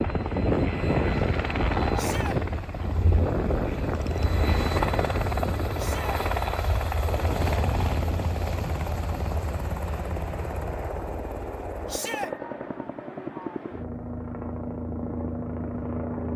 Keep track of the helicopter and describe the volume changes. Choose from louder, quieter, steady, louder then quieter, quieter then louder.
quieter.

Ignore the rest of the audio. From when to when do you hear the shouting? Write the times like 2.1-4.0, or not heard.
1.9-2.4, 5.8-6.2, 11.8-12.3.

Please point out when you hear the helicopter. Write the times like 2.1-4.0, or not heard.
0.0-16.3.